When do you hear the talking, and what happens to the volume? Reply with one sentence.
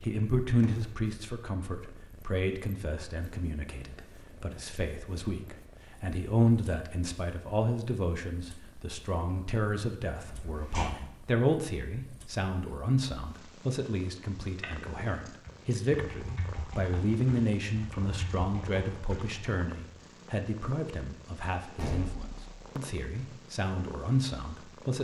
The talking can be heard from 0.0 to 25.0 s, at a steady volume.